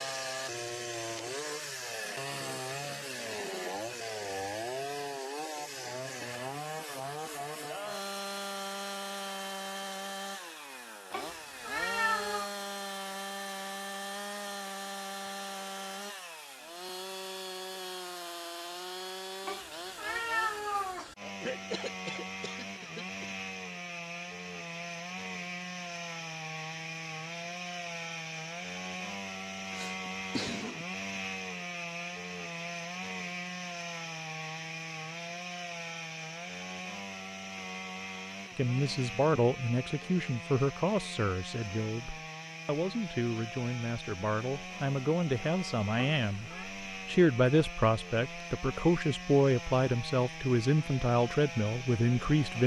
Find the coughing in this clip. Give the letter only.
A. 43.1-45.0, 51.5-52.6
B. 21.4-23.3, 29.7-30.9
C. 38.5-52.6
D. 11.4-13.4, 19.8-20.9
B.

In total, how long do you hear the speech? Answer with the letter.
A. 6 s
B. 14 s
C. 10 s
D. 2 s
B.